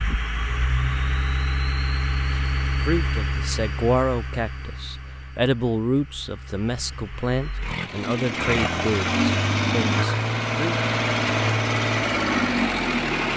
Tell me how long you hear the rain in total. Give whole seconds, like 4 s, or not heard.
not heard.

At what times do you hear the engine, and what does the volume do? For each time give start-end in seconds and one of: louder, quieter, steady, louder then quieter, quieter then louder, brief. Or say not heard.
0.0-13.3 quieter then louder.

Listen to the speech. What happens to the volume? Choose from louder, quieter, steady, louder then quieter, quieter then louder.
quieter.